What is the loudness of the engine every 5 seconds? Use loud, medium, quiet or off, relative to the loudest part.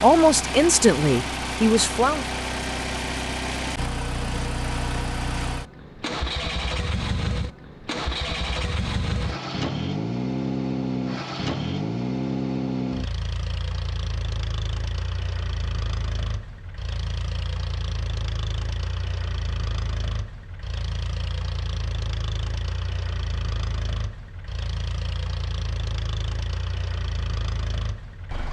loud, loud, loud, medium, medium, medium.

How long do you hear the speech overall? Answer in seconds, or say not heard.
2 s.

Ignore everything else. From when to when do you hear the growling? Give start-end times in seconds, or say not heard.
not heard.